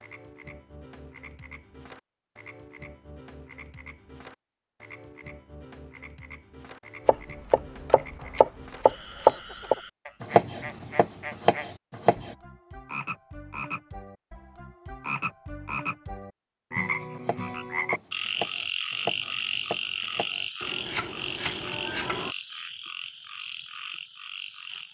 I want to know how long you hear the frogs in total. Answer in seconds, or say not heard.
25 s.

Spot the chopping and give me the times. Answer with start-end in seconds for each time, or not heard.
7.0-12.3, 17.0-22.4.